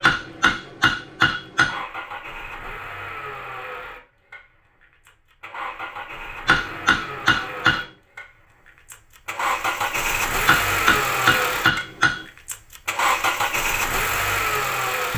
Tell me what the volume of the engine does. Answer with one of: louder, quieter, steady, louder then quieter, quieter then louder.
louder.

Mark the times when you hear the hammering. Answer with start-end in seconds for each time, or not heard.
0.0-1.8, 6.5-7.8, 10.4-12.2.